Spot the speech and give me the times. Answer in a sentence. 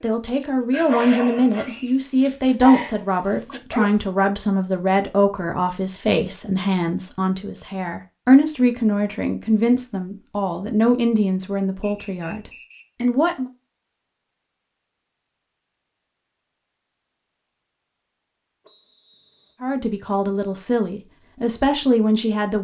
The speech can be heard from 0.0 to 13.5 s and from 19.6 to 22.5 s.